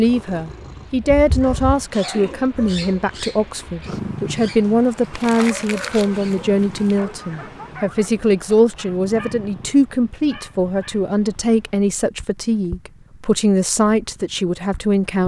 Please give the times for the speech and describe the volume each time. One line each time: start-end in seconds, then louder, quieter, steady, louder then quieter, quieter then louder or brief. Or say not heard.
0.0-15.2 steady.